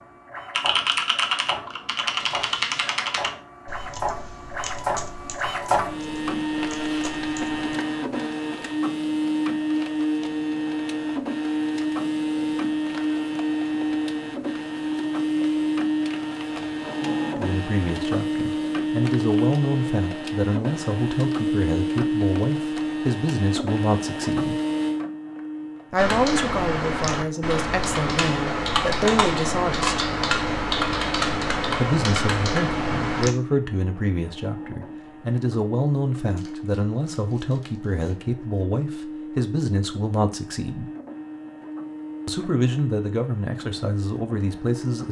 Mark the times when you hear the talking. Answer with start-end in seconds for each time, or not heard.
17.4-24.6, 25.9-30.1, 31.8-40.9, 42.2-45.0.